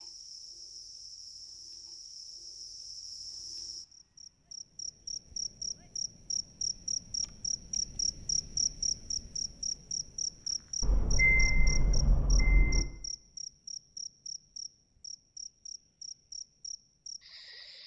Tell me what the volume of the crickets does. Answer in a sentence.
The volume of the crickets goes up, then down.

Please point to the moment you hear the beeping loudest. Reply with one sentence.
The loudest moment of the beeping is at 11 seconds.